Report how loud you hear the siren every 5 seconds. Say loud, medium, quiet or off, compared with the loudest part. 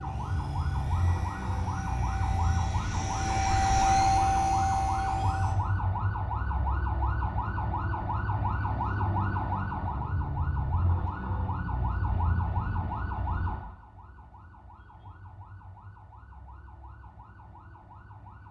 loud, loud, loud, quiet.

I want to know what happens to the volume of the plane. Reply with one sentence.
The loudness of the plane goes up.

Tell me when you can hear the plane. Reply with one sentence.
The plane can be heard from 0.0 to 5.5 s.